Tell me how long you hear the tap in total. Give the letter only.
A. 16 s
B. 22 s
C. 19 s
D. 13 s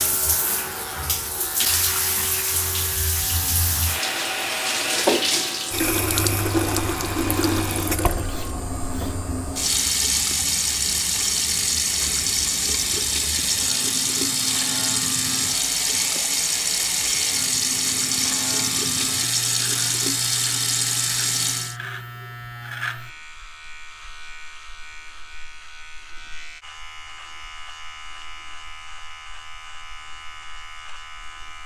B.